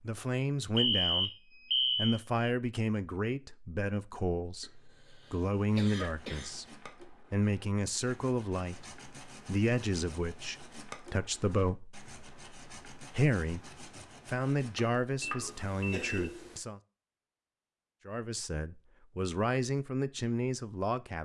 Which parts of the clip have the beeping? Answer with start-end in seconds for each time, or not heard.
0.8-2.2, 15.2-16.3.